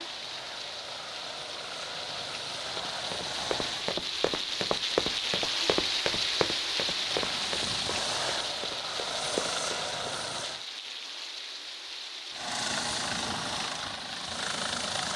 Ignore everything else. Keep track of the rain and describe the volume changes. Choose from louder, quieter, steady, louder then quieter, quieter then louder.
louder then quieter.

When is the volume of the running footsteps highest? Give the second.
5 s.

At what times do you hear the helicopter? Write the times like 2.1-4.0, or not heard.
0.0-4.0, 6.8-10.7, 12.3-15.1.